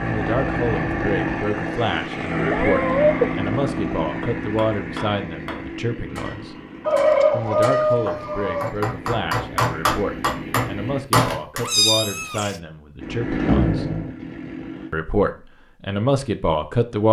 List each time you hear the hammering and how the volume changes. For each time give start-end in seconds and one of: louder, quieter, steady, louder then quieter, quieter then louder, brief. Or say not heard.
4.2-11.7 louder.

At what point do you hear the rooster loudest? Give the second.
7 s.